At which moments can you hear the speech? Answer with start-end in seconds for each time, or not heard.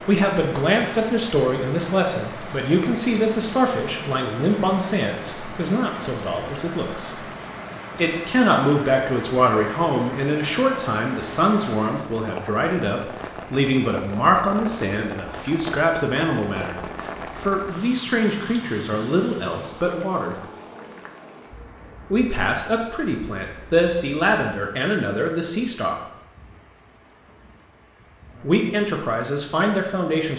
0.1-7.1, 8.0-20.4, 22.1-25.9, 28.4-30.3.